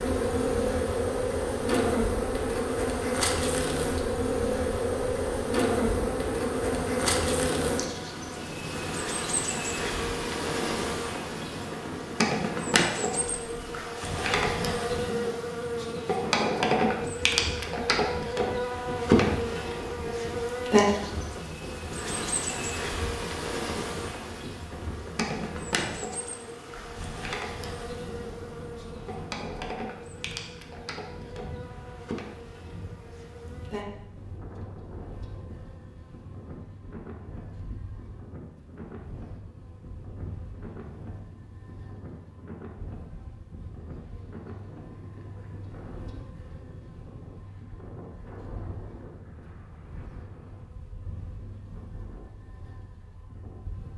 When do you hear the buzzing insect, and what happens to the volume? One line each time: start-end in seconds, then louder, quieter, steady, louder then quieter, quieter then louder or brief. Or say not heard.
0.0-53.9 quieter.